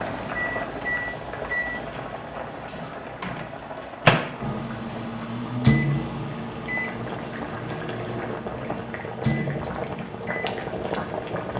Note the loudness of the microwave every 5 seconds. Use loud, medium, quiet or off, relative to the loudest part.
loud, loud, quiet.